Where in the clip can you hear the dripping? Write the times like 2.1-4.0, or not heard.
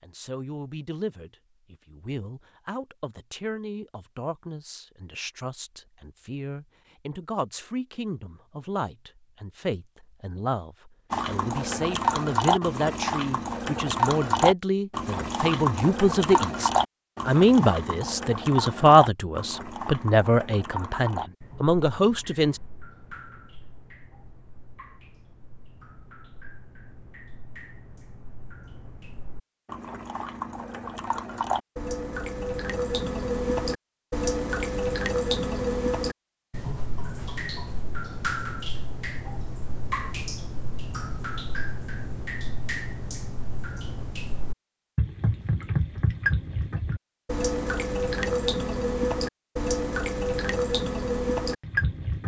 11.1-52.2.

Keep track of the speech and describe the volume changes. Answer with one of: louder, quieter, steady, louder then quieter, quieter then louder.
louder.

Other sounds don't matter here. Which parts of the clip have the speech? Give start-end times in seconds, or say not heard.
0.0-22.6.